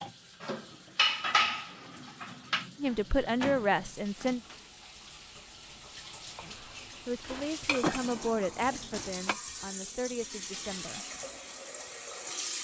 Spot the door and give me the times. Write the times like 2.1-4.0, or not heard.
2.9-4.6, 7.8-8.7.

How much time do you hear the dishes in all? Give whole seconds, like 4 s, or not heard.
5 s.